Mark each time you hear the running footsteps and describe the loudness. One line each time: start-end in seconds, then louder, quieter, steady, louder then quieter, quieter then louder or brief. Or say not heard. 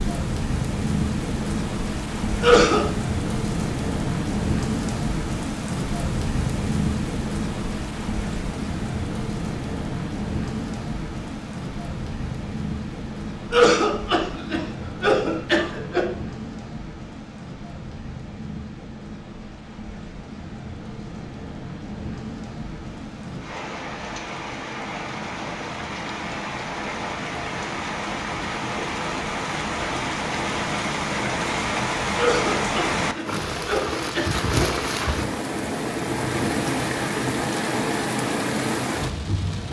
not heard.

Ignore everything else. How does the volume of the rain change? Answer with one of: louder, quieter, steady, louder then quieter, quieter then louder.
quieter then louder.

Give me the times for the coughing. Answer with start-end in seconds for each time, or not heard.
2.4-2.9, 13.5-16.1, 32.1-34.7.